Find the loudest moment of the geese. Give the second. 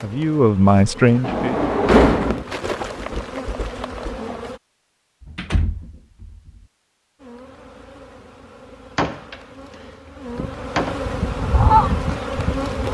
12 s.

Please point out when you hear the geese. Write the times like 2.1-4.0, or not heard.
10.2-12.8.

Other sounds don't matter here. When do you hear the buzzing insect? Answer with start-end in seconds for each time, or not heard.
0.0-4.6, 7.2-12.8.